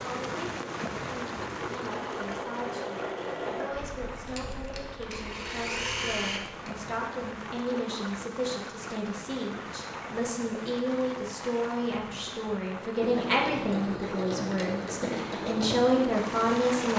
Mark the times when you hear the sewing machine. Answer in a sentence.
You can hear the sewing machine from 0.1 to 6.8 s and from 13.0 to 16.9 s.